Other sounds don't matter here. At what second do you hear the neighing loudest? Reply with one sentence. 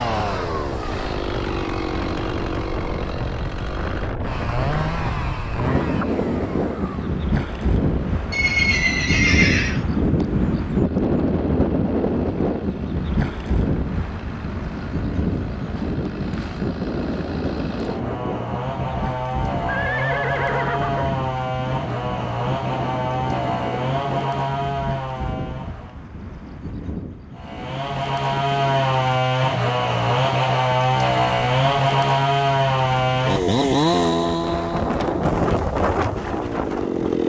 The volume of the neighing peaks at 9 seconds.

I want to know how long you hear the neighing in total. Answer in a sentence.
The neighing can be heard for 3 seconds in total.